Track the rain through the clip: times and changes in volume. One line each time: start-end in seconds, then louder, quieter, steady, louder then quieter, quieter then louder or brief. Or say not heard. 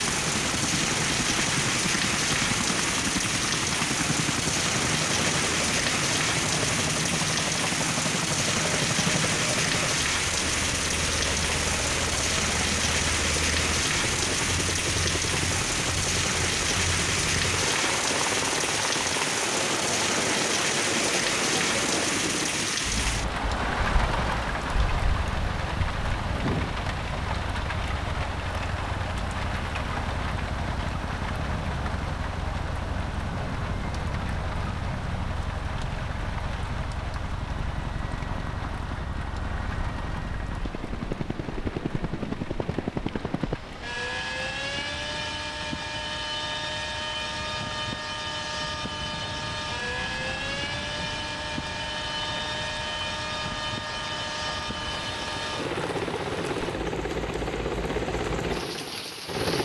0.0-59.6 quieter.